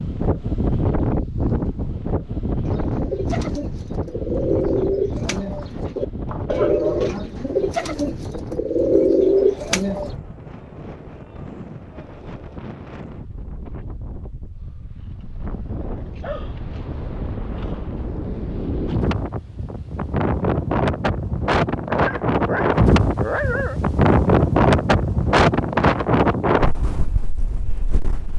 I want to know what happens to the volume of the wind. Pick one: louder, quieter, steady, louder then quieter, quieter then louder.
quieter then louder.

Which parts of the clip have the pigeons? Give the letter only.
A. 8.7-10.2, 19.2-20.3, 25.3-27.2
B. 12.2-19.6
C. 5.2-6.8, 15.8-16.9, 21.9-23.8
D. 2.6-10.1
D.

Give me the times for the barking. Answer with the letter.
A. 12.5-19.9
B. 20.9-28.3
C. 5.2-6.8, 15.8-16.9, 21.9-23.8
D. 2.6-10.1
C.